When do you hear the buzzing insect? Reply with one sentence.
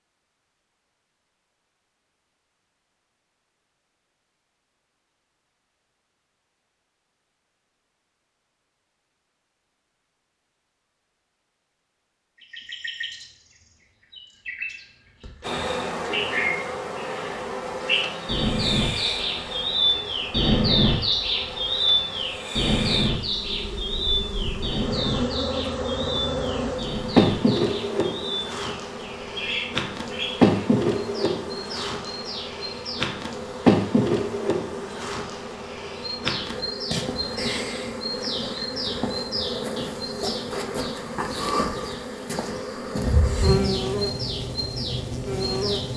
You can hear the buzzing insect from 15.4 to 45.9 s.